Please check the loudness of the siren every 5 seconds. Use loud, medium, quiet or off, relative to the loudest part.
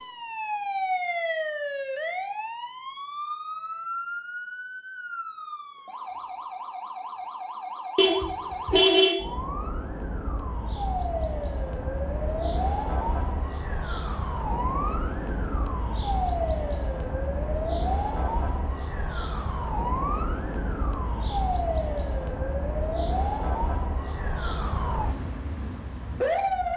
loud, medium, loud, loud, loud, loud.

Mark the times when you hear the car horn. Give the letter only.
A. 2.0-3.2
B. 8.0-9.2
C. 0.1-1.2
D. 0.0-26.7
B.